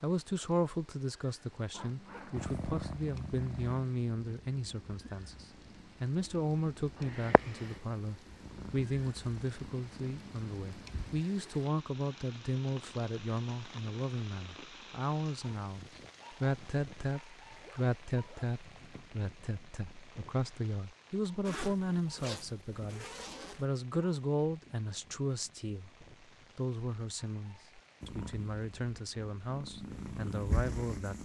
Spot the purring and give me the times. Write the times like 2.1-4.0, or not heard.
2.4-11.2, 28.0-31.1.